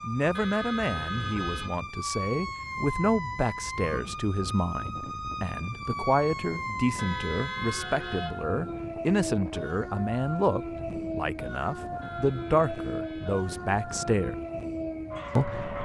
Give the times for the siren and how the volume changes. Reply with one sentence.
You can hear the siren from 0.0 to 15.8 s, at a steady volume.